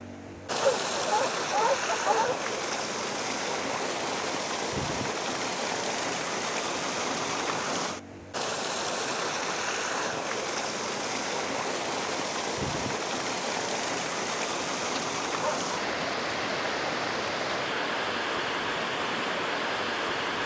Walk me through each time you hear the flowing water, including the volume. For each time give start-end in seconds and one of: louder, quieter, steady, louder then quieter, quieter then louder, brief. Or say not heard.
0.0-20.4 steady.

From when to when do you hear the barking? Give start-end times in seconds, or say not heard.
0.5-2.4, 14.9-15.7.